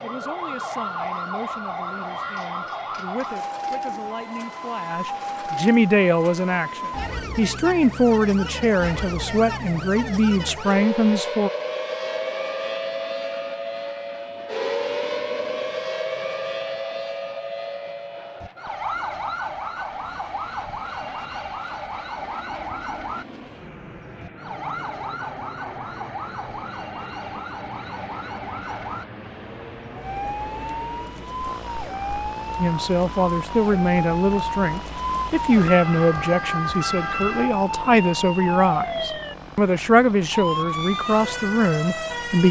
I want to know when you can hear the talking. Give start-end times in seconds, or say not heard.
0.0-11.5, 32.5-42.4.